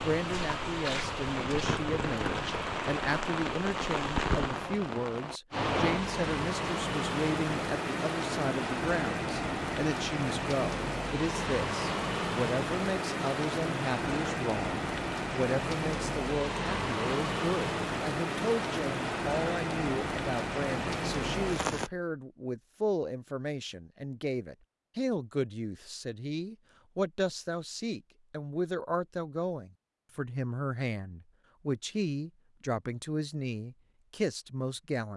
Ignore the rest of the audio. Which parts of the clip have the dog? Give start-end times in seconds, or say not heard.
not heard.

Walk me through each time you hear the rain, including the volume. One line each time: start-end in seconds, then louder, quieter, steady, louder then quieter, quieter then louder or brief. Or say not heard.
0.0-21.9 steady.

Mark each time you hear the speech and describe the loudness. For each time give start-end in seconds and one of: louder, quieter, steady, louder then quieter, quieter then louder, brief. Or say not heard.
0.0-35.1 steady.